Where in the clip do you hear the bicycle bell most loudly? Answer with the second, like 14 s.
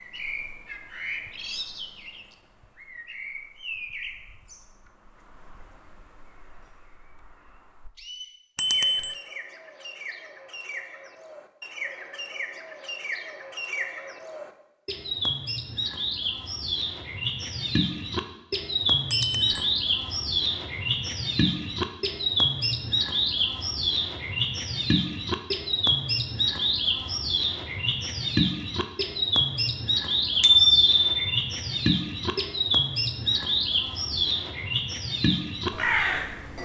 31 s.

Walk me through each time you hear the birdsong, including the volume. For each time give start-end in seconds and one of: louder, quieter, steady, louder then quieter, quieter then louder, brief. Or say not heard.
0.0-36.6 louder.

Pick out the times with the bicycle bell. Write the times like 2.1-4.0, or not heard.
8.6-9.2, 19.1-19.6, 30.4-31.2.